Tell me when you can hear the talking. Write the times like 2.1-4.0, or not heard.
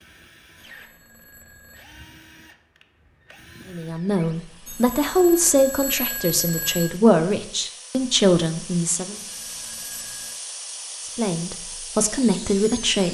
3.7-9.2, 11.0-13.0.